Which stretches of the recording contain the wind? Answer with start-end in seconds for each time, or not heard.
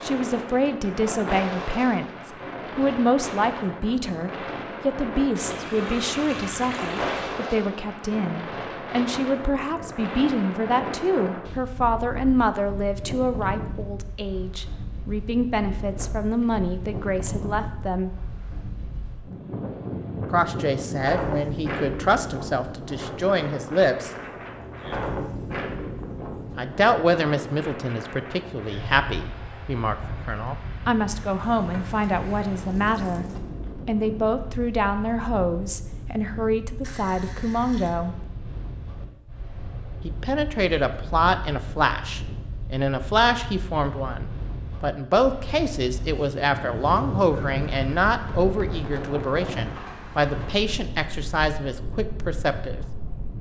0.0-53.3.